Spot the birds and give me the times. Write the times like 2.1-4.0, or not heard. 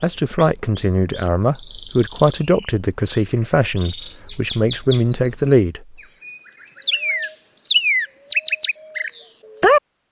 0.0-9.8.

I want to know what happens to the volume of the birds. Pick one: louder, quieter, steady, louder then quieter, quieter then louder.
louder.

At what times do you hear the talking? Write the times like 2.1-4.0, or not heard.
0.0-5.8.